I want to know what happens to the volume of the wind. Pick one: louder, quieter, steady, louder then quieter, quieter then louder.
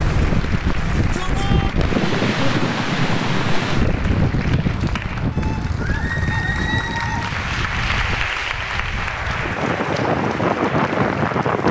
quieter then louder.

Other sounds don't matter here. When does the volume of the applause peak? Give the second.
8 s.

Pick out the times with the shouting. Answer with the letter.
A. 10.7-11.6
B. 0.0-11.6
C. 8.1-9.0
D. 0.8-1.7
D.